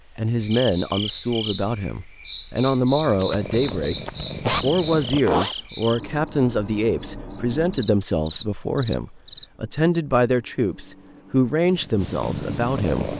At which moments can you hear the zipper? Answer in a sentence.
You can hear the zipper from 3.0 to 5.5 s.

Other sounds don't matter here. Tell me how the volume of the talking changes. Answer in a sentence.
The volume of the talking stays about the same.